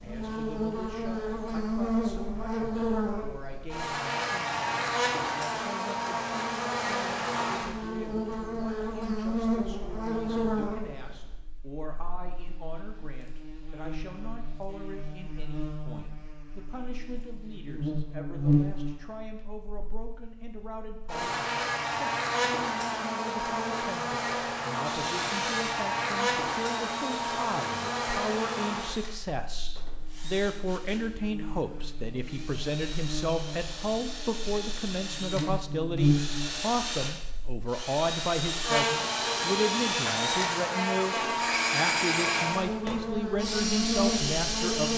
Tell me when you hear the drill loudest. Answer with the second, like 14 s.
42 s.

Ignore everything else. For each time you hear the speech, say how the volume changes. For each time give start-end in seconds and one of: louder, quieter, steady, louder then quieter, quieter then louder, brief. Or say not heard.
0.0-44.9 louder.